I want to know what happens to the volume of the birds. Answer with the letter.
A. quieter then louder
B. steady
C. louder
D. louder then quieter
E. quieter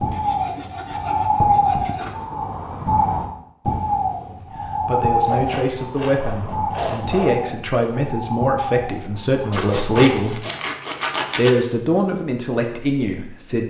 E.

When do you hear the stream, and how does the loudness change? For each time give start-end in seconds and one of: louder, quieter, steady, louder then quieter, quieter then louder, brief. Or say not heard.
not heard.